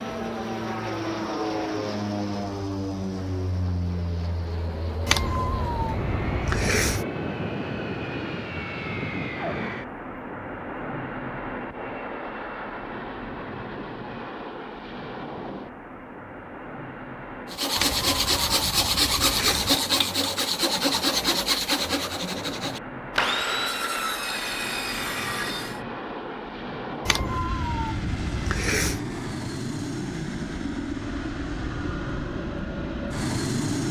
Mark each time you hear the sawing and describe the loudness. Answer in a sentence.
The sawing can be heard from 17.5 to 25.8 s, getting quieter.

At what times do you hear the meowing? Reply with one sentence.
You can hear the meowing from 5.0 to 7.0 s, from 17.8 to 19.8 s and from 27.1 to 29.0 s.